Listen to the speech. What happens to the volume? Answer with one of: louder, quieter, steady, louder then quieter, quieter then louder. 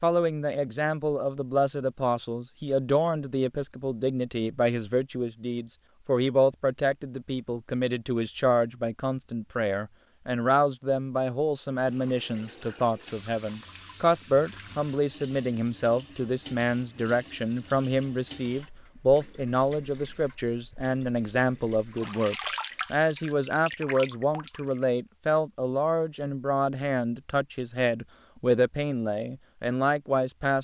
steady.